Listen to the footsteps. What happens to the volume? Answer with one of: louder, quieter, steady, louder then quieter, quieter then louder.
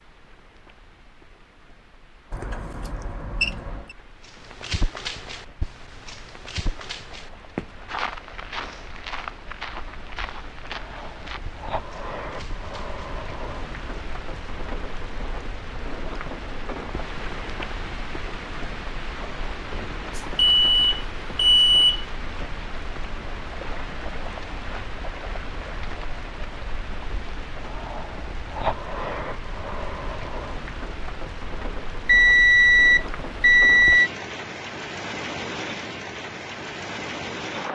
quieter.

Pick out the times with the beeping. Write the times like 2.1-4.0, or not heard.
2.3-3.9, 20.1-22.1, 32.0-34.1.